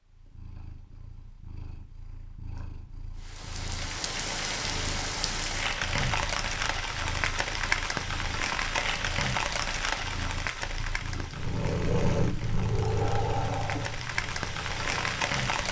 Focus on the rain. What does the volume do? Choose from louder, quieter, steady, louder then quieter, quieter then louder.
quieter then louder.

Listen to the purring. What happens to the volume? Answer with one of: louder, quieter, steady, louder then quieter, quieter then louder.
louder.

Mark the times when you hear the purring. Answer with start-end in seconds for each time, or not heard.
0.0-15.6.